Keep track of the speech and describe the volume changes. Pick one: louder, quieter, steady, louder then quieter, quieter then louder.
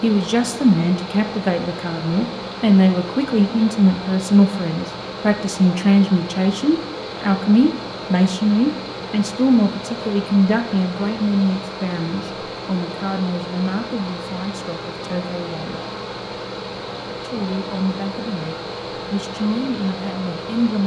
quieter.